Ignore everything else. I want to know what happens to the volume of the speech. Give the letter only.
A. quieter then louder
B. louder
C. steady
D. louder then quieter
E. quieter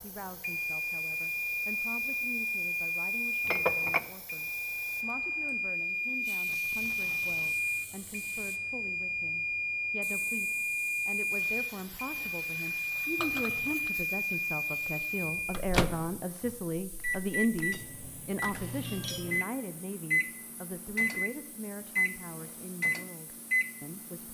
D.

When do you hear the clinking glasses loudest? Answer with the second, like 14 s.
4 s.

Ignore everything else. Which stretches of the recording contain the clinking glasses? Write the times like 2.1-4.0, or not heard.
3.5-4.1, 13.2-13.9, 17.7-19.4.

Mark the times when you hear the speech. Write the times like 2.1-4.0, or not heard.
0.0-24.2.